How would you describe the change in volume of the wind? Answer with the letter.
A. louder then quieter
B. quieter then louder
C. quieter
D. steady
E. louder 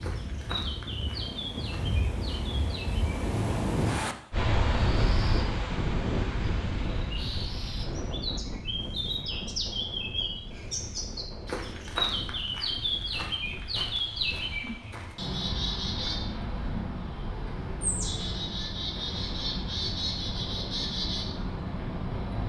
C.